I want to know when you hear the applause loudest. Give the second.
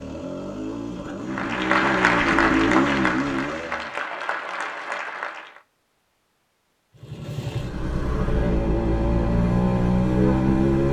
2 s.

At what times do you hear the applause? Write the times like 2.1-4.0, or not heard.
1.2-5.6.